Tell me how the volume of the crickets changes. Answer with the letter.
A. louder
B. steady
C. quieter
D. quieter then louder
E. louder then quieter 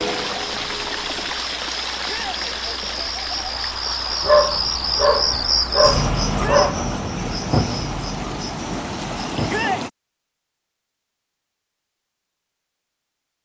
E.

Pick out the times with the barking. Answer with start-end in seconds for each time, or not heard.
4.2-6.8.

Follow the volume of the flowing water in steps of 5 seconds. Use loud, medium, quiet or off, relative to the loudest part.
loud, loud, off.